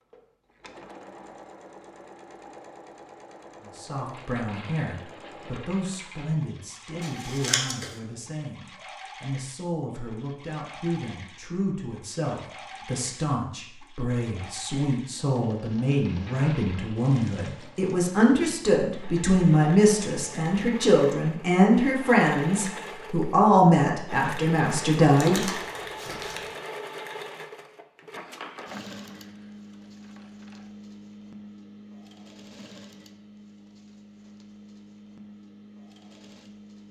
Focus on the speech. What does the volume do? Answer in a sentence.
The volume of the speech goes up.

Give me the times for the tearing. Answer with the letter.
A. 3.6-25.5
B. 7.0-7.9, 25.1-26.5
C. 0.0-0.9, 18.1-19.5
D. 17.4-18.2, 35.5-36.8
B.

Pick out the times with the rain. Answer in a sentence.
The rain can't be heard in this clip.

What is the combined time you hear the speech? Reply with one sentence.
You can hear the speech for 22 seconds altogether.